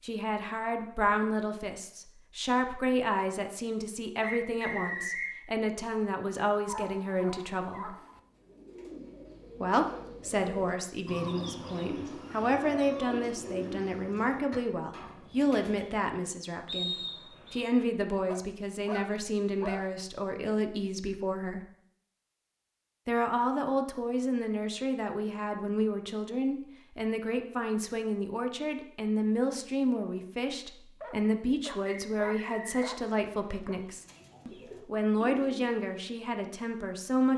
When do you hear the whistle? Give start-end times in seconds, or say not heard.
4.2-5.3, 16.6-17.6, 31.9-33.0.